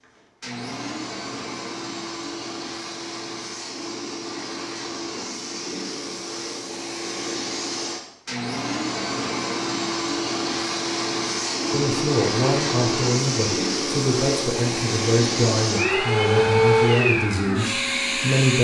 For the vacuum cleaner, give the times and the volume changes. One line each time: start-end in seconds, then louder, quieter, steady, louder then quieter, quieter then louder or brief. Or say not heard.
0.0-18.5 louder.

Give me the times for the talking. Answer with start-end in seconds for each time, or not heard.
11.7-18.5.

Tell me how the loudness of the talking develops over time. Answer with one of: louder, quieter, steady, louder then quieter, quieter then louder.
steady.